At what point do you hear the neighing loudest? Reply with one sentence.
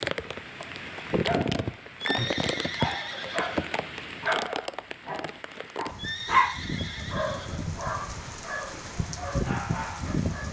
The volume of the neighing peaks at 2 seconds.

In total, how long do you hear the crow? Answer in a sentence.
You can't hear the crow here.